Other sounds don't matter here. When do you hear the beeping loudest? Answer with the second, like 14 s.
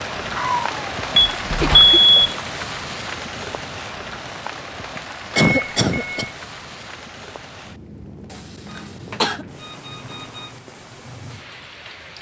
2 s.